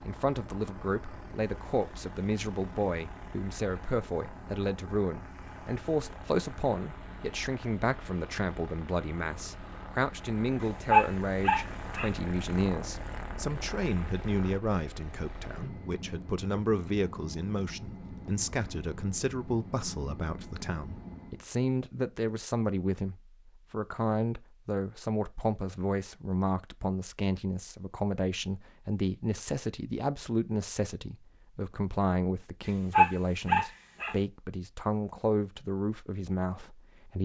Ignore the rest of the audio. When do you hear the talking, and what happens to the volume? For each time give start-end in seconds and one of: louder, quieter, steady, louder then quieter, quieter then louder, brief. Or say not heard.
0.1-37.2 steady.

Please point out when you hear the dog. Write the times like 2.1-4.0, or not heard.
10.6-12.1, 32.6-34.1.